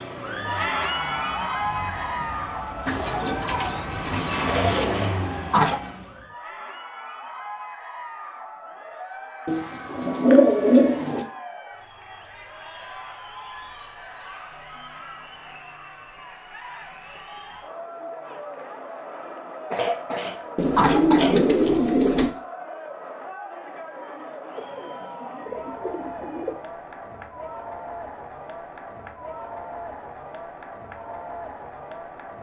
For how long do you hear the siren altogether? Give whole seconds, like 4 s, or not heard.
not heard.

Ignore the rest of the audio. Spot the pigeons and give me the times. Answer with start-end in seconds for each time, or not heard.
2.9-4.8, 9.4-11.2, 20.6-22.4, 24.6-26.6.